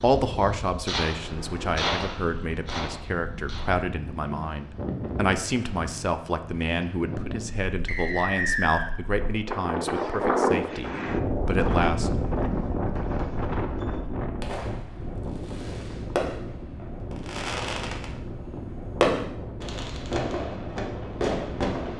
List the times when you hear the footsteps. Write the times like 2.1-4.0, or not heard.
not heard.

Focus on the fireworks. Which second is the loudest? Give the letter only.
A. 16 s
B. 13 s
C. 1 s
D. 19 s
D.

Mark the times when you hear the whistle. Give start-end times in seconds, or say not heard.
7.8-8.9.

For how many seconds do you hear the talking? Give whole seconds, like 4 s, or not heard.
12 s.